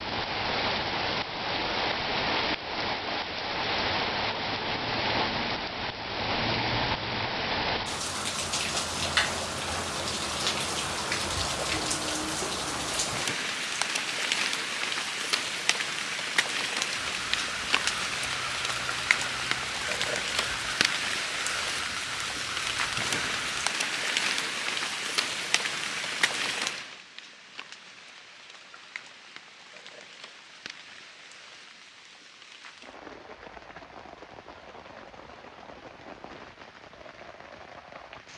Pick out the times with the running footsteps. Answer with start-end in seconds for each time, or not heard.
not heard.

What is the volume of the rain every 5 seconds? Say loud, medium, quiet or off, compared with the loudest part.
loud, loud, loud, loud, loud, medium, quiet, quiet.